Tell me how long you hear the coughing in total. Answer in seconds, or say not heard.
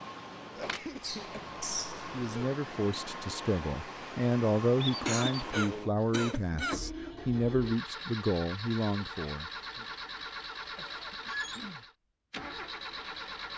5 s.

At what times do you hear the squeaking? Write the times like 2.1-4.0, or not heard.
1.0-2.0, 4.8-5.5, 11.2-11.7.